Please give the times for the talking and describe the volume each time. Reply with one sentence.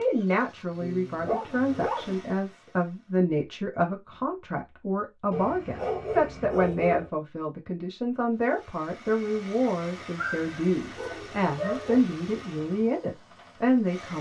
The talking can be heard from 0.0 to 14.1 s, at a steady volume.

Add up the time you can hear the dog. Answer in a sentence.
You can hear the dog for 5 seconds altogether.